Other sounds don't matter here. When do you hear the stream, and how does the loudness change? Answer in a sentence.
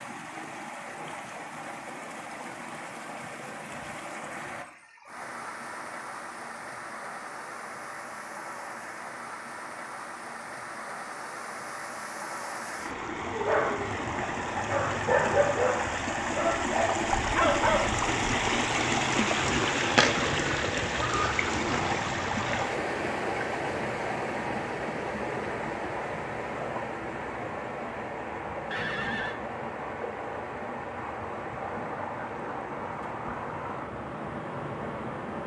You can hear the stream from 0.0 to 35.4 s, getting louder then quieter.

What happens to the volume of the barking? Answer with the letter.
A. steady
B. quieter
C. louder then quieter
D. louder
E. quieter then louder
D.